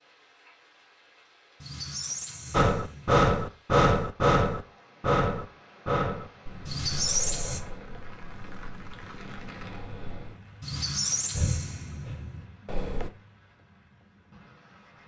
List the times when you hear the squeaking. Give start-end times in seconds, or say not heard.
1.6-3.2, 6.7-7.6, 10.6-12.4.